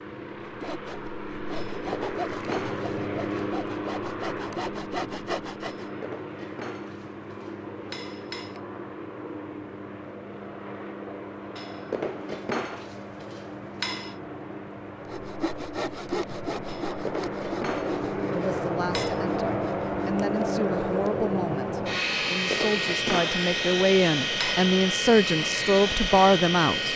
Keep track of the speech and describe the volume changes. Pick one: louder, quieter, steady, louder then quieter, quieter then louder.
louder.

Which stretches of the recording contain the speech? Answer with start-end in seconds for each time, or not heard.
18.3-26.9.